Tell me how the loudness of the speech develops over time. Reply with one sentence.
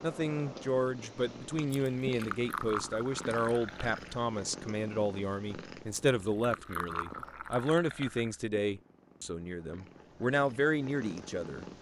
The volume of the speech stays about the same.